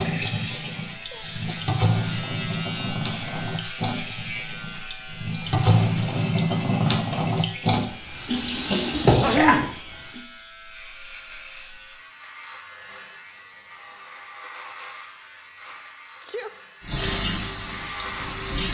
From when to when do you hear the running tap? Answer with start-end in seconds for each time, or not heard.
0.0-10.2, 16.9-18.6.